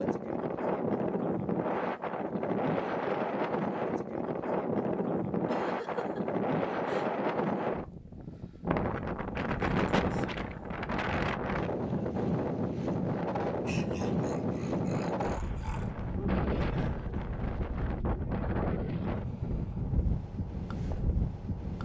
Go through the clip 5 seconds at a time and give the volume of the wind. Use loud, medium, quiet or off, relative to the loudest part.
loud, loud, loud, loud, medium.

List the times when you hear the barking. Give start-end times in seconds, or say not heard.
not heard.